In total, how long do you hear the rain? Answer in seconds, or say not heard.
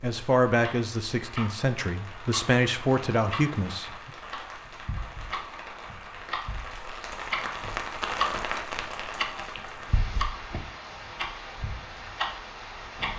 13 s.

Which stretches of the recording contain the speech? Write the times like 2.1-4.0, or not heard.
0.0-4.1.